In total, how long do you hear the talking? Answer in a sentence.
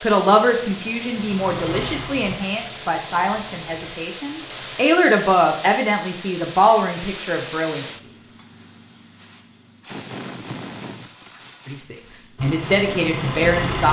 You can hear the talking for 10 seconds altogether.